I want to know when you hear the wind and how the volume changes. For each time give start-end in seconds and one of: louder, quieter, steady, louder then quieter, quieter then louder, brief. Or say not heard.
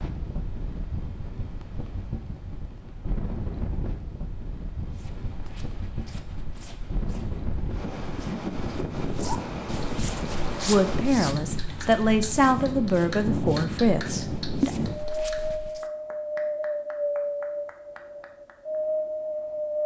0.0-19.8 louder.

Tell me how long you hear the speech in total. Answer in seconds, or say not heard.
4 s.